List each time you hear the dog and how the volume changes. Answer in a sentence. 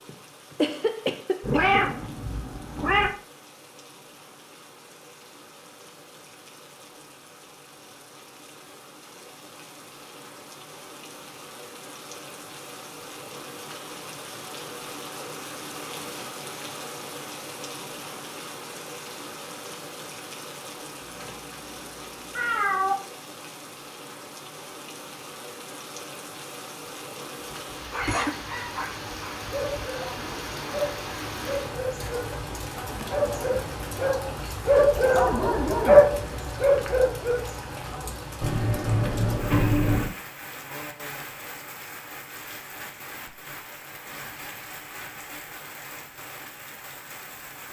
The dog can be heard from 27.4 to 38.1 s, getting louder.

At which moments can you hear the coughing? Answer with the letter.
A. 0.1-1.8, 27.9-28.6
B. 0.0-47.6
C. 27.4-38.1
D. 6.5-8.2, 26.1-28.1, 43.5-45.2
A.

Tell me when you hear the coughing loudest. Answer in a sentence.
The loudest moment of the coughing is at 1 second.